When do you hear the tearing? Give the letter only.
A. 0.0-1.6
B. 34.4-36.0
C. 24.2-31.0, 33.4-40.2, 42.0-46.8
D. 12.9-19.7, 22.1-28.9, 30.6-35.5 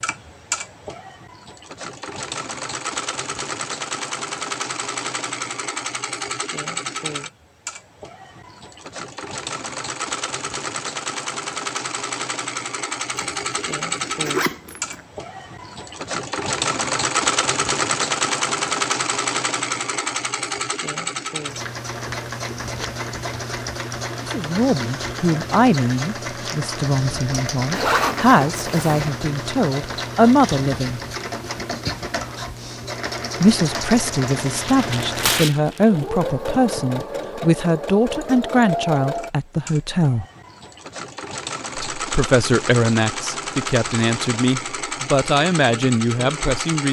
B.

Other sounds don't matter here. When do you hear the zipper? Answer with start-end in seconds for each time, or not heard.
13.2-15.0, 27.8-29.1.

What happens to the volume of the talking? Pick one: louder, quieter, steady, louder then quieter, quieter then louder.
steady.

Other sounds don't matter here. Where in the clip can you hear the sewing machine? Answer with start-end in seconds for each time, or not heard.
0.0-46.8.